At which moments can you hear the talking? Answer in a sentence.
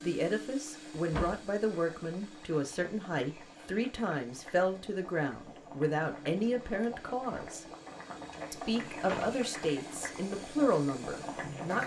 The talking can be heard from 0.0 to 7.7 s and from 8.5 to 11.8 s.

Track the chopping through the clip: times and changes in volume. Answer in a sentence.
You can't hear the chopping here.